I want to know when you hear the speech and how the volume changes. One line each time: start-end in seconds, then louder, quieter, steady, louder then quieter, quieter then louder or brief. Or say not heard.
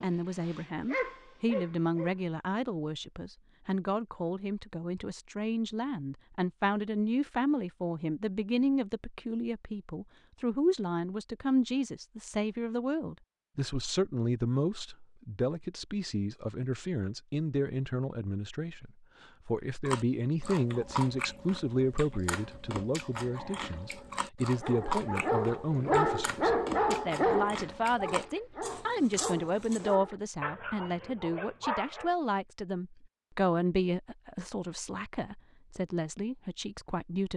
0.0-37.3 steady.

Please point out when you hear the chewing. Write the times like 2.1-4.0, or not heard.
19.9-29.9.